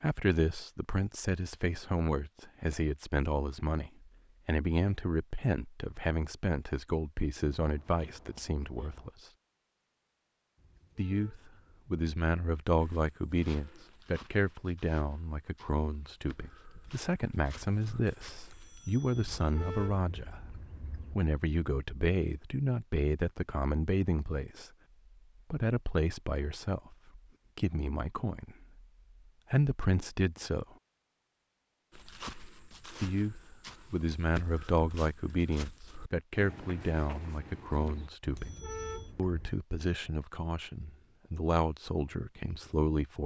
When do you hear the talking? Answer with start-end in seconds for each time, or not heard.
0.0-9.1, 10.9-24.7, 25.5-28.9, 29.5-30.6, 33.0-38.5, 39.1-43.2.